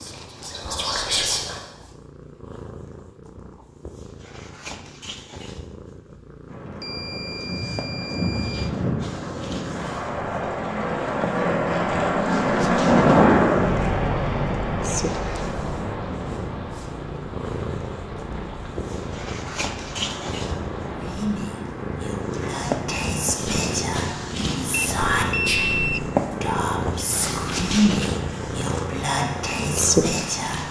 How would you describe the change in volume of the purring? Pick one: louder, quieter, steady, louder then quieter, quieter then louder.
louder.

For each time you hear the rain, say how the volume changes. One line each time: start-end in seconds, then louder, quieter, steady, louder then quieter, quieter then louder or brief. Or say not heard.
6.5-30.6 louder then quieter.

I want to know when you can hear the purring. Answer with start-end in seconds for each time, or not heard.
0.0-30.6.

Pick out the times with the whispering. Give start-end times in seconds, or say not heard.
0.0-1.6, 20.9-30.6.